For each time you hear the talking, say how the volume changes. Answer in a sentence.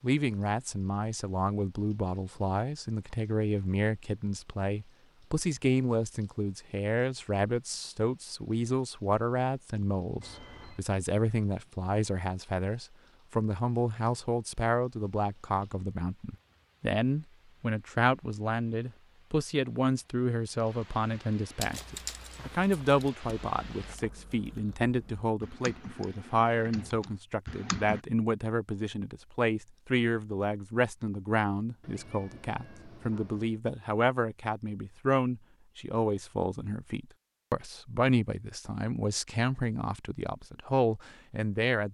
The talking can be heard from 0.0 to 41.8 s, at a steady volume.